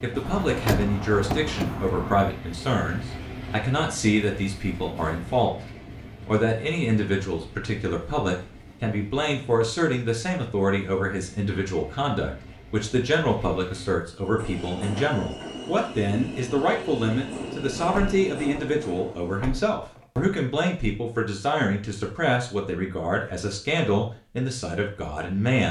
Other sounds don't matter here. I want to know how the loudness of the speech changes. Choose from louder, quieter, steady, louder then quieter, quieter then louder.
steady.